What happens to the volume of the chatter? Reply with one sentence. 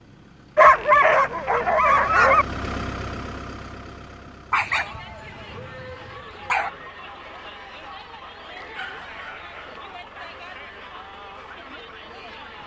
The volume of the chatter stays about the same.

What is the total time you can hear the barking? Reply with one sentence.
The barking can be heard for 6 seconds in total.